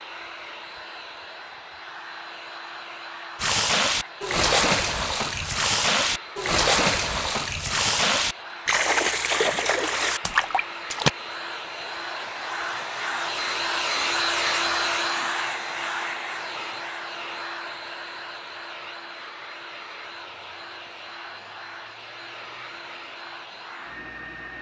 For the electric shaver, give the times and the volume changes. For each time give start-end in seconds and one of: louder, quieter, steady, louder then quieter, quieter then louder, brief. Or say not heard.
not heard.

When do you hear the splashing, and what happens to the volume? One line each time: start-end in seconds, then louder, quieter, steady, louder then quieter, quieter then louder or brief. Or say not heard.
3.4-11.1 steady.